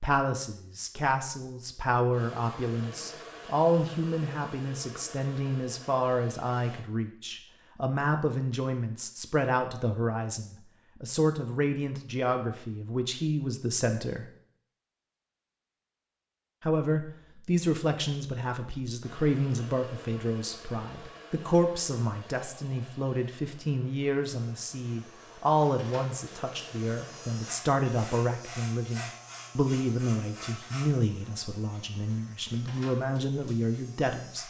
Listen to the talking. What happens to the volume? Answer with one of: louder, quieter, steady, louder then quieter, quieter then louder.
steady.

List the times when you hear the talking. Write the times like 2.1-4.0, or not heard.
0.0-14.2, 16.6-34.4.